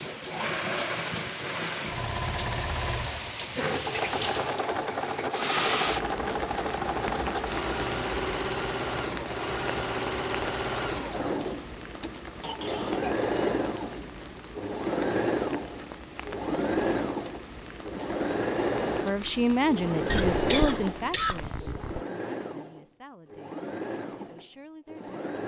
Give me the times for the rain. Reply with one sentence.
You can hear the rain from 0.0 to 21.6 s.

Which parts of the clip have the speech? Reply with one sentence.
The speech can be heard from 19.1 to 25.2 s.